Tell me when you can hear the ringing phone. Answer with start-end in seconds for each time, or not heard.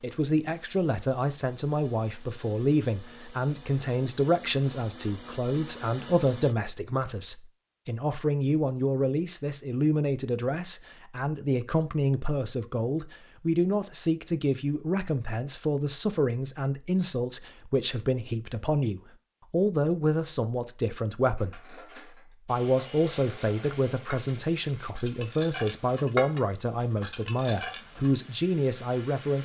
not heard.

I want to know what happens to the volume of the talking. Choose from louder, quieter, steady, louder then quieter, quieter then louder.
steady.